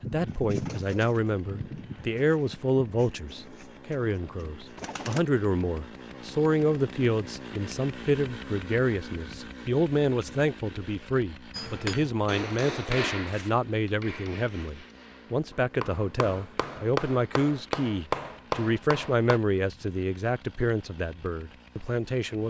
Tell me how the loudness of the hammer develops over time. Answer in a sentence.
The volume of the hammer goes down, then up.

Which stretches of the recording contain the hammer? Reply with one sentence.
The hammer can be heard from 11.5 to 19.4 s.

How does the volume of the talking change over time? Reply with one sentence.
The volume of the talking stays about the same.